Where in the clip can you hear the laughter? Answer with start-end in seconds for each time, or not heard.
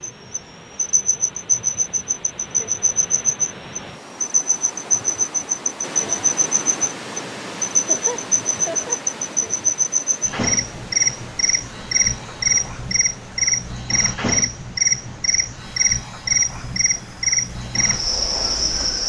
7.7-9.0.